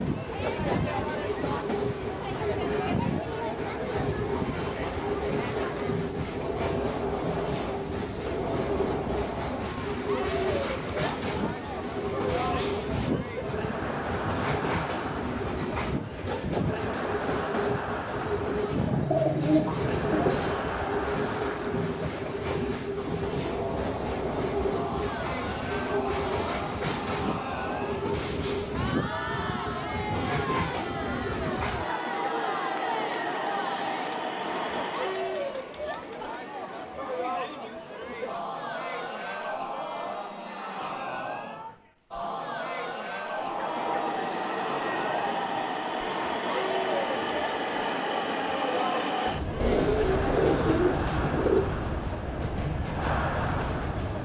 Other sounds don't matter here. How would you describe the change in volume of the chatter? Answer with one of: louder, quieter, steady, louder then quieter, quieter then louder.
steady.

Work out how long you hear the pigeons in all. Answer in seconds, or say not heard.
4 s.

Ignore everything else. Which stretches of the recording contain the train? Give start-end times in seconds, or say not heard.
0.0-35.4, 43.3-54.1.